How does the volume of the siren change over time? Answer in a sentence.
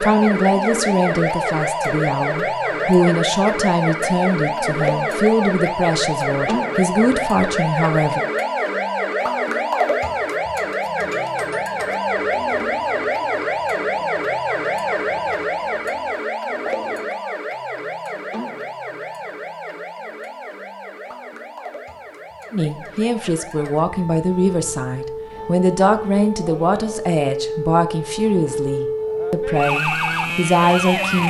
The loudness of the siren goes down, then up.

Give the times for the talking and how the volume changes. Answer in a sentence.
The talking can be heard from 0.0 to 8.2 s, at a steady volume; and from 22.5 to 31.2 s, at a steady volume.